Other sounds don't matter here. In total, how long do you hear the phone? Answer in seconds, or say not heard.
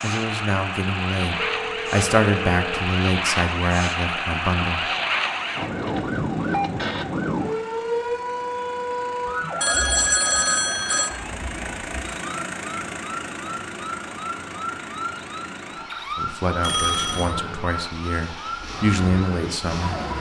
4 s.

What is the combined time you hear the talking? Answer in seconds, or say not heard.
9 s.